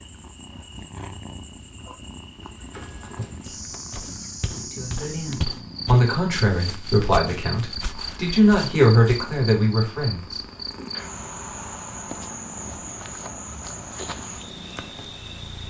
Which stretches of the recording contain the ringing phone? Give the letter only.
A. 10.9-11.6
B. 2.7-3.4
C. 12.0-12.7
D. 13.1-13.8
B.